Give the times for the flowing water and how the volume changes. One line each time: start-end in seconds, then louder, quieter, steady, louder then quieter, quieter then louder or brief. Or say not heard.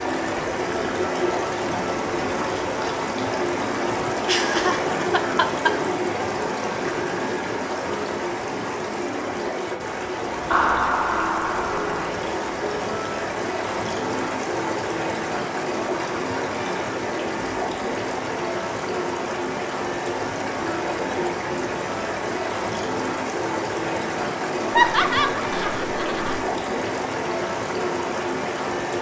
0.0-28.9 steady.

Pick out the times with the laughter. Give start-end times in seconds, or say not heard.
4.2-5.8, 10.5-12.1, 24.7-26.4.